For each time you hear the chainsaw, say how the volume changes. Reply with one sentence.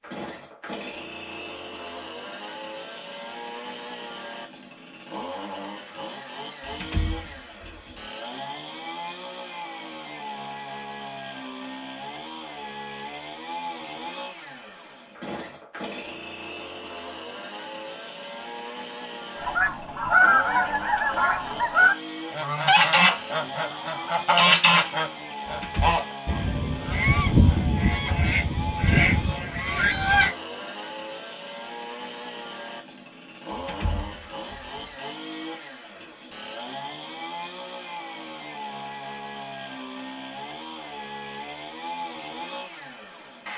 You can hear the chainsaw from 0.0 to 43.5 s, at a steady volume.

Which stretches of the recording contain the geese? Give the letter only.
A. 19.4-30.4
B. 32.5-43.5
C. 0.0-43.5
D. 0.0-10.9
A.